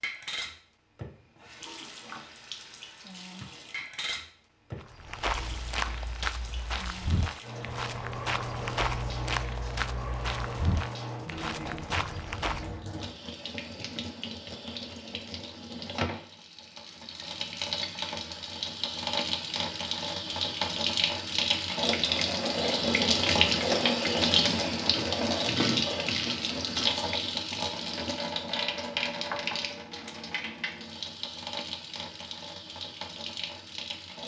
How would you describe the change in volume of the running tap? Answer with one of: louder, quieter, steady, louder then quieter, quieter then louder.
louder then quieter.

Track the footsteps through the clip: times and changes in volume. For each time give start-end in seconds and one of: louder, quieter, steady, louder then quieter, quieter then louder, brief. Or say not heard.
4.8-12.8 steady.